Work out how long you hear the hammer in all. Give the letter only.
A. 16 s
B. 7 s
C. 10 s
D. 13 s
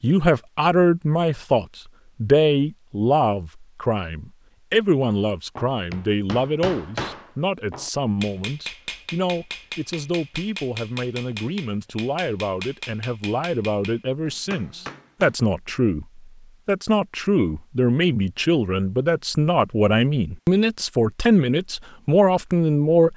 C.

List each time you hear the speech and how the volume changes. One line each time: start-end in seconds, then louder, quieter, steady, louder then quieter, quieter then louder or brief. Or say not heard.
0.0-23.1 quieter then louder.